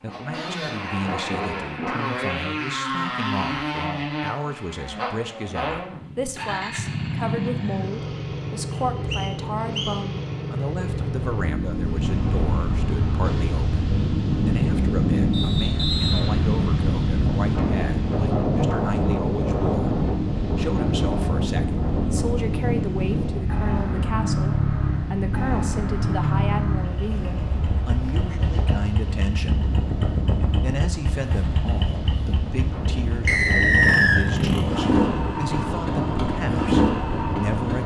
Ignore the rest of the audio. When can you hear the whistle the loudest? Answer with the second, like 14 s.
34 s.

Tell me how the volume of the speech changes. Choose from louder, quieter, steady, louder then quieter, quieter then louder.
steady.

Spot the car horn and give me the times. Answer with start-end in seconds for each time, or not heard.
not heard.